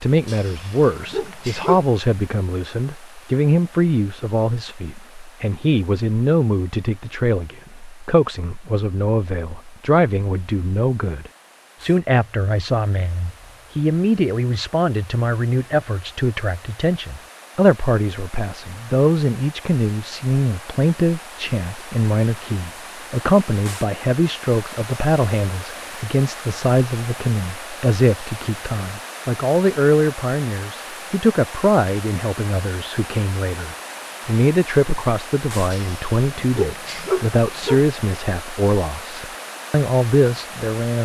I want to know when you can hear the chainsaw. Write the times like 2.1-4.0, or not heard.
not heard.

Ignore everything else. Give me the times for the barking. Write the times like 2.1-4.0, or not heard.
0.2-1.9, 35.7-37.9.